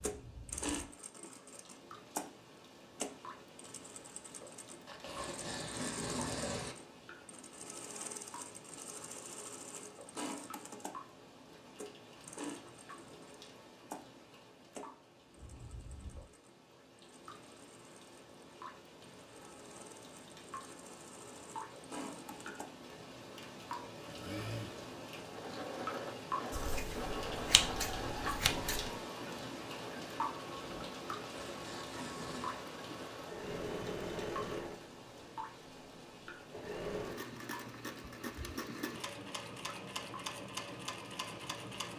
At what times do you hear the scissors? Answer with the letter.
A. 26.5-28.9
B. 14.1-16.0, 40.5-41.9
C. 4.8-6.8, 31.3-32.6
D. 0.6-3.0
A.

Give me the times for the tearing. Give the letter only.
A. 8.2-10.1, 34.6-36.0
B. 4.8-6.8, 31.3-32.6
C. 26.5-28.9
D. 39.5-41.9
B.